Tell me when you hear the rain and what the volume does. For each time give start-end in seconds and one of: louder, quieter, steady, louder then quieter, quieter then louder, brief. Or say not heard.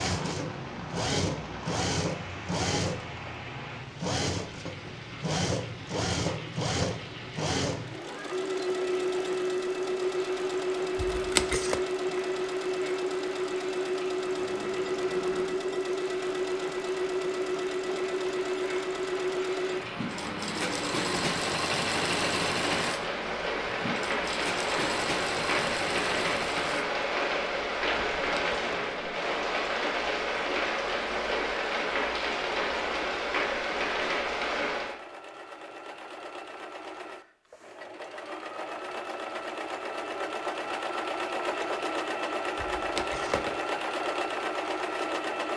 0.0-35.0 louder.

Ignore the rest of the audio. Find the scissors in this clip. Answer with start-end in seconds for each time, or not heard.
10.9-11.8, 28.1-28.8, 42.5-43.5.